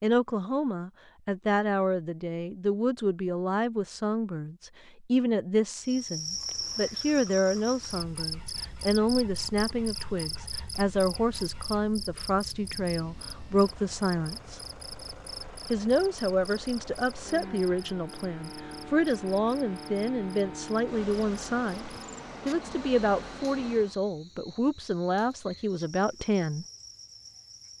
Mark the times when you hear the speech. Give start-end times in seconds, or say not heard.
0.0-14.6, 15.7-26.6.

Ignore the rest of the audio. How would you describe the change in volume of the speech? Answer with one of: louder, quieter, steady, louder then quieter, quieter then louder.
steady.